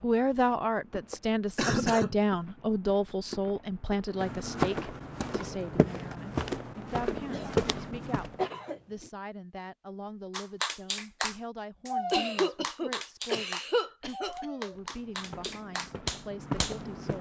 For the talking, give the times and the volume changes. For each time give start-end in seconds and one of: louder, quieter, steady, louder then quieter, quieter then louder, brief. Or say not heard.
0.0-17.1 quieter.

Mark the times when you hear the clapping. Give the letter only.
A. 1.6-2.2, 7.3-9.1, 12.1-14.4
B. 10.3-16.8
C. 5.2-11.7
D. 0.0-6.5
B.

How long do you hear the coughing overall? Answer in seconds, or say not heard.
5 s.